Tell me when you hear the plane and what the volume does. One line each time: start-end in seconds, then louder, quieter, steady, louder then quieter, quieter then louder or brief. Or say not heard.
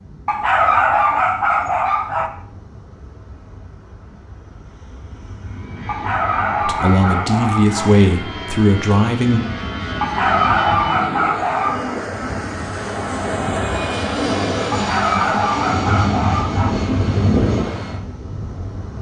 0.0-18.9 louder.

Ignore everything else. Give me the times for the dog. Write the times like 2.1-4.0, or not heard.
0.2-2.3, 5.8-7.9, 10.0-11.9, 14.7-16.8.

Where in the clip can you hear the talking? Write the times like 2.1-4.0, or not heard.
6.7-9.4.